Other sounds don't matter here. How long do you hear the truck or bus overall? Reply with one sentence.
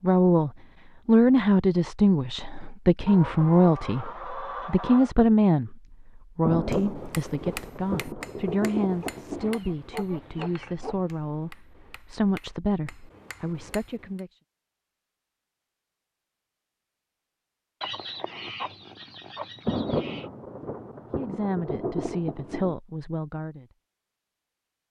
You can't hear the truck or bus here.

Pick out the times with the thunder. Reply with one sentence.
The thunder can be heard from 6.4 to 9.6 s and from 19.6 to 22.8 s.